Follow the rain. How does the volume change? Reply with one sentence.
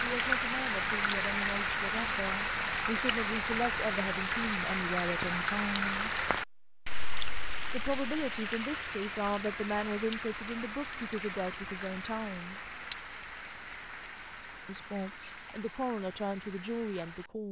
The loudness of the rain goes down.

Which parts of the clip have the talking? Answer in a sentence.
The talking can be heard from 0.0 to 6.1 s, from 7.7 to 12.6 s and from 14.7 to 17.4 s.